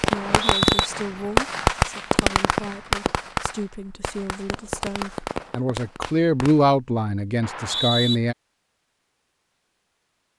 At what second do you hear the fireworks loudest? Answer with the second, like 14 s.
2 s.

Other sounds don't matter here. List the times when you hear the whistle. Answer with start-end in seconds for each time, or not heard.
0.1-0.9, 7.4-8.2.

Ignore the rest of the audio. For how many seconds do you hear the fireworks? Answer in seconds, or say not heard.
7 s.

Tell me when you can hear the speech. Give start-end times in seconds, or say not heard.
0.0-8.3.